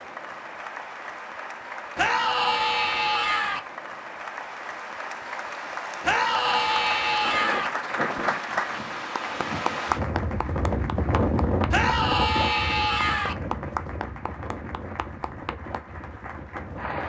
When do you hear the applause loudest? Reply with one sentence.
The volume of the applause peaks at 8 seconds.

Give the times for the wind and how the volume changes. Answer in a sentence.
The wind can be heard from 7.2 to 17.0 s, getting louder then quieter.